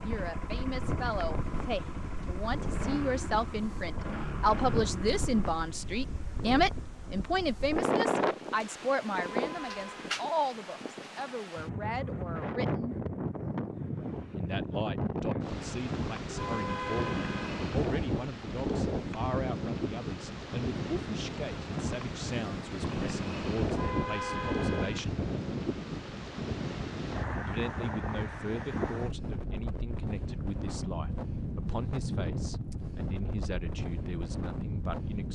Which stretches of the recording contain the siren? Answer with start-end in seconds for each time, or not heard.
not heard.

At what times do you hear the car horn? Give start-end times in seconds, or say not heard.
9.1-10.2, 16.3-17.6, 23.6-25.0.